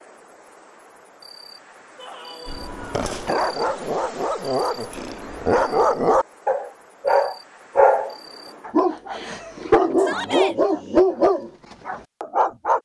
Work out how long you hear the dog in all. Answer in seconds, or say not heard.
10 s.